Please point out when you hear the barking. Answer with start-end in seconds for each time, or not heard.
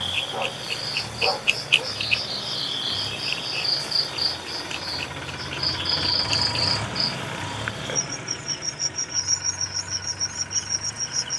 0.3-1.9.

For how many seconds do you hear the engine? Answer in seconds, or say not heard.
11 s.